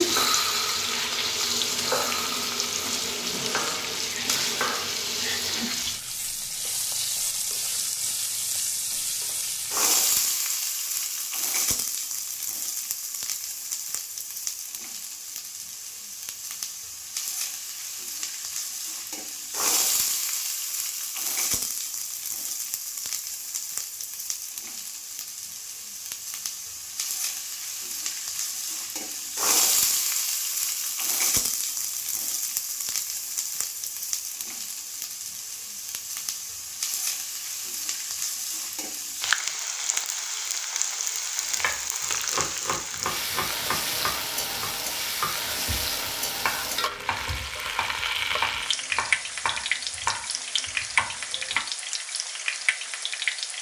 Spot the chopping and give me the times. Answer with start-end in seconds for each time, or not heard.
0.0-5.7, 41.5-51.6.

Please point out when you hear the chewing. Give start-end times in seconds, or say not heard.
not heard.